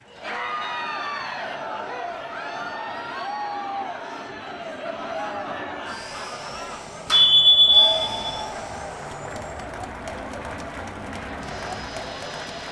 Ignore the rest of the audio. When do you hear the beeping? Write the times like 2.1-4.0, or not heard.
7.0-8.4.